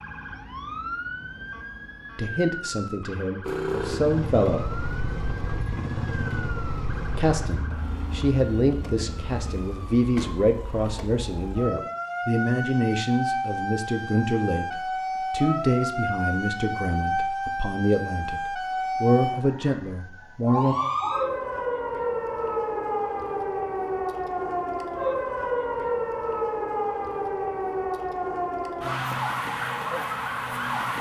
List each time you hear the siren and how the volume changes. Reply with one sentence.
You can hear the siren from 0.0 to 30.9 s, getting louder.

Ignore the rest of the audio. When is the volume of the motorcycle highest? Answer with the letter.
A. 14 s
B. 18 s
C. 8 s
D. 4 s
D.